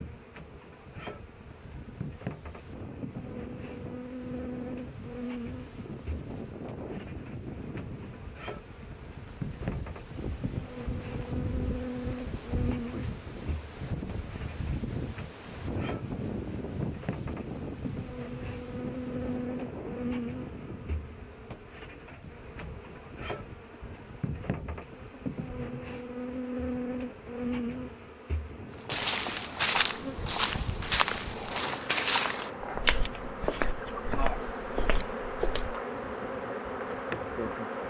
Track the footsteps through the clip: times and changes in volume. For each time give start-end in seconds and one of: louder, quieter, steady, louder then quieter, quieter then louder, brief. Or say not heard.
28.7-35.8 quieter.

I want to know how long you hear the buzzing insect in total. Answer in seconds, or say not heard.
38 s.